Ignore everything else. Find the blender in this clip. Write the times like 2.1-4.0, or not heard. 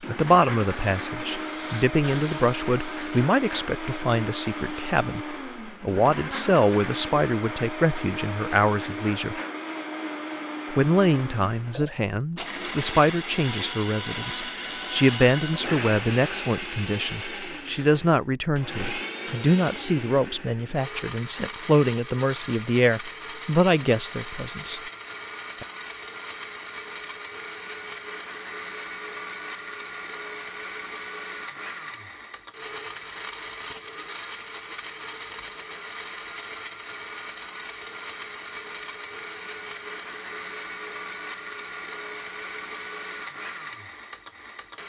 0.0-44.8.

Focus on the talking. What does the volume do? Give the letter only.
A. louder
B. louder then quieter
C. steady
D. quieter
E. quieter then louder
C.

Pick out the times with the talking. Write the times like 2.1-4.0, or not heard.
0.1-9.4, 10.7-24.8.